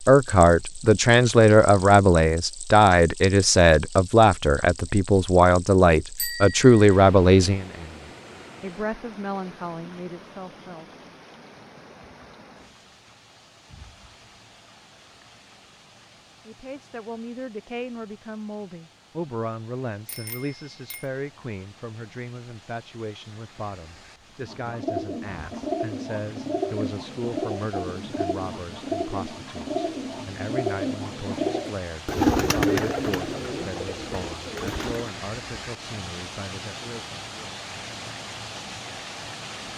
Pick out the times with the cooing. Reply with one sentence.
The cooing can be heard from 24.4 to 35.1 s.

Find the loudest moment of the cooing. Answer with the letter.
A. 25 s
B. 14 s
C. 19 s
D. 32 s
D.